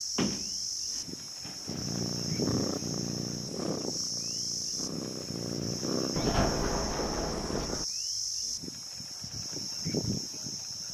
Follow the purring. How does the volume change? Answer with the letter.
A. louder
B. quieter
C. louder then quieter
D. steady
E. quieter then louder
E.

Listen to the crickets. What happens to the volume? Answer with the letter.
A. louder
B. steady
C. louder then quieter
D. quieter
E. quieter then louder
B.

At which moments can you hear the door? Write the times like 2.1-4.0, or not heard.
0.1-1.9, 6.2-7.8.